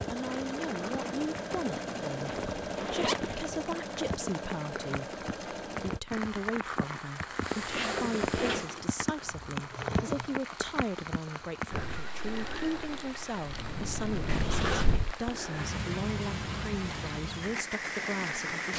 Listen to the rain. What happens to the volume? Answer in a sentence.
The loudness of the rain goes up.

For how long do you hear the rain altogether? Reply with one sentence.
The rain can be heard for 19 seconds in total.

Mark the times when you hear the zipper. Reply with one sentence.
You can hear the zipper from 2.2 to 3.5 s, from 7.5 to 8.8 s and from 14.2 to 15.2 s.